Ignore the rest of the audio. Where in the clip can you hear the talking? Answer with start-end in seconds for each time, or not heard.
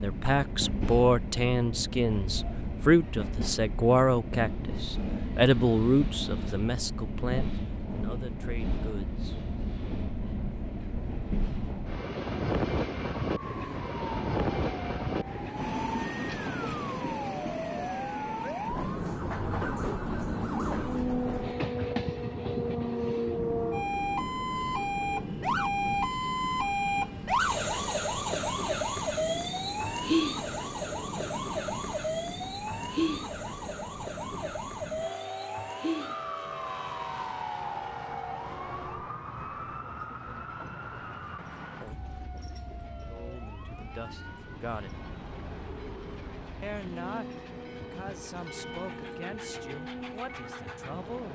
0.0-9.4, 43.0-45.0, 46.6-51.3.